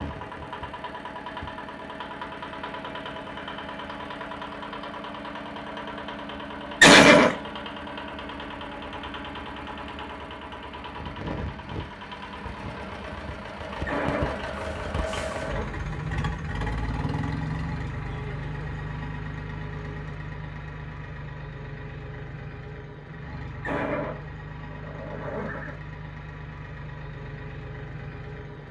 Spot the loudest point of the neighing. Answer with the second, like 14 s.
7 s.